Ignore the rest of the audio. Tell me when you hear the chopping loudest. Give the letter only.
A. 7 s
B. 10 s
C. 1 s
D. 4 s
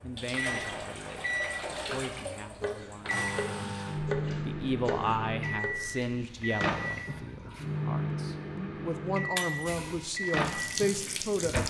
D.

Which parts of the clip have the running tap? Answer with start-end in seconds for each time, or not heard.
0.0-7.7, 9.7-11.6.